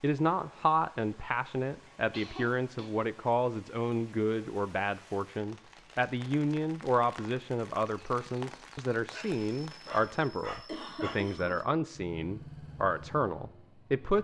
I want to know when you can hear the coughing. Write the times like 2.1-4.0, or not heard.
2.1-2.9, 10.7-11.6.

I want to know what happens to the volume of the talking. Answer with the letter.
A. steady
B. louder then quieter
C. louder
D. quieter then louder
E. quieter
A.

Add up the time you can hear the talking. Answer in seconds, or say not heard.
14 s.